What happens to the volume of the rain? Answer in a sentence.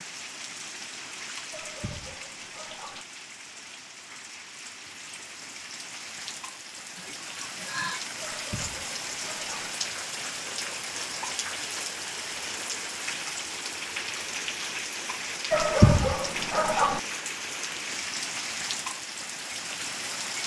The loudness of the rain goes up.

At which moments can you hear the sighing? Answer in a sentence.
You can hear the sighing from 7.0 to 8.0 s.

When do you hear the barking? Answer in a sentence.
The barking can be heard from 1.5 to 3.0 s, from 8.2 to 9.7 s and from 15.5 to 17.0 s.